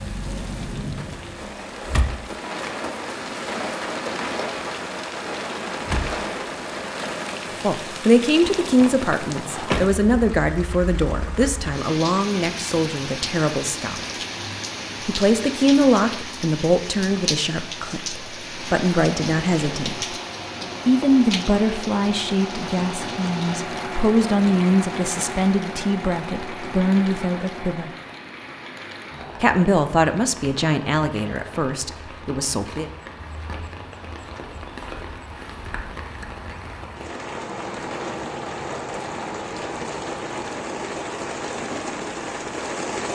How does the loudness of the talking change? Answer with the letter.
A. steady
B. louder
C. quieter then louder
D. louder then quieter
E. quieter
A.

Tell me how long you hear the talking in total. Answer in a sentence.
The talking can be heard for 22 seconds in total.